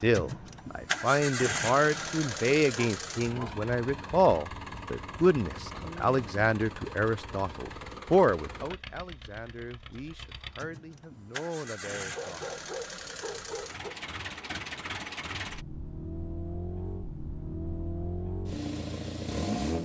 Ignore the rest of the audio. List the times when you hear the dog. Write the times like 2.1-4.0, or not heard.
2.7-3.6, 12.2-13.9.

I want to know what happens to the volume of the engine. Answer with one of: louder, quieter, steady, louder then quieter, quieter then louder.
quieter then louder.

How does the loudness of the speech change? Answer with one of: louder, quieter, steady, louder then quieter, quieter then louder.
quieter.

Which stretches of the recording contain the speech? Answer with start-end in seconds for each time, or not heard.
0.0-12.6.